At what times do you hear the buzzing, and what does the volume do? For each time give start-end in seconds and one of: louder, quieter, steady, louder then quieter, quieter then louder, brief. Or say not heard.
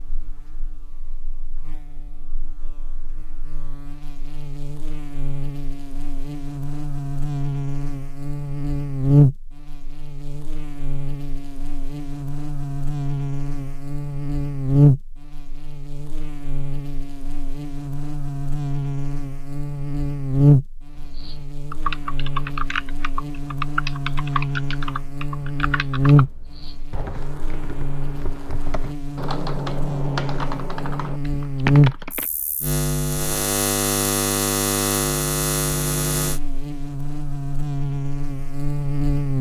0.0-39.3 louder.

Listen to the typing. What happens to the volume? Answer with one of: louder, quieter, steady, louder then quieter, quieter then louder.
quieter then louder.